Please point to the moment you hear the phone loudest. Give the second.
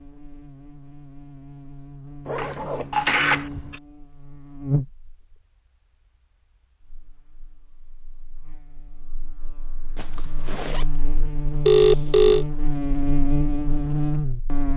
12 s.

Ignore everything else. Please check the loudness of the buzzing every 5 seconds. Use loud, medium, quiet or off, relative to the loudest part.
medium, quiet, loud.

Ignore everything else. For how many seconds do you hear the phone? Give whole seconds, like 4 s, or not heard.
2 s.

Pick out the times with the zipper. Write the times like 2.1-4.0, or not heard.
2.2-3.8, 9.9-10.8.